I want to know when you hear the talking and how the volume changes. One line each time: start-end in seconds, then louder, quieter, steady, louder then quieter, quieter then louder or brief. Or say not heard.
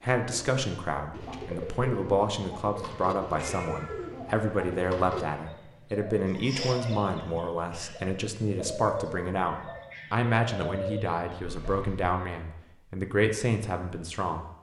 0.0-14.5 steady.